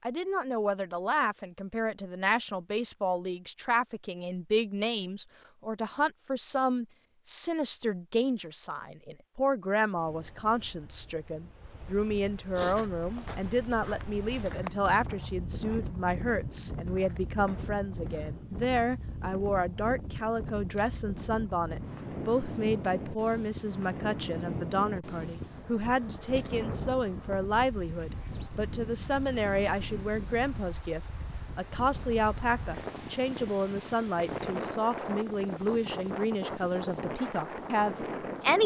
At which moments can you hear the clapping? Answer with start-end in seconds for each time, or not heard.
not heard.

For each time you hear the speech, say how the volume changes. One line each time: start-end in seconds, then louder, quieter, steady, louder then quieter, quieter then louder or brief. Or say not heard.
0.0-38.6 steady.